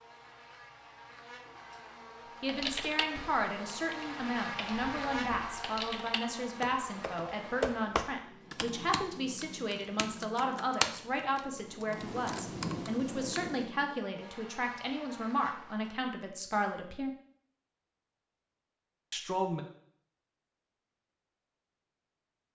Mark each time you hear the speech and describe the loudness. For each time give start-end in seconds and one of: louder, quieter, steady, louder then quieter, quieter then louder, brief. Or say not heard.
2.4-17.1 steady
19.1-19.6 brief.